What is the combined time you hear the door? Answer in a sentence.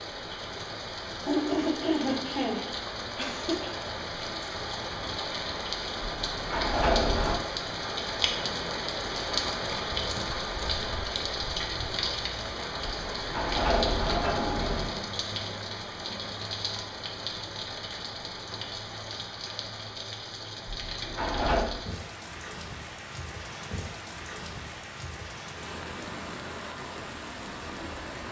The door can be heard for 4 seconds in total.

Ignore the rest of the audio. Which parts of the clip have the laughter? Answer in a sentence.
The laughter can be heard from 1.2 to 3.7 s.